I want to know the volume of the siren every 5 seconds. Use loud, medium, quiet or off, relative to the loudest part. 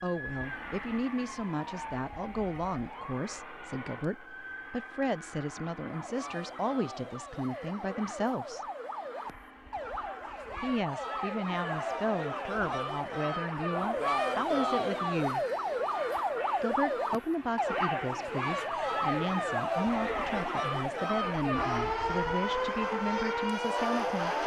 quiet, medium, loud, loud, loud.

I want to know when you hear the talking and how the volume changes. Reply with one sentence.
The talking can be heard from 0.0 to 8.7 s, at a steady volume; from 10.6 to 15.4 s, at a steady volume; and from 16.6 to 24.4 s, at a steady volume.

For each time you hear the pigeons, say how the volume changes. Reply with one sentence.
You can't hear the pigeons here.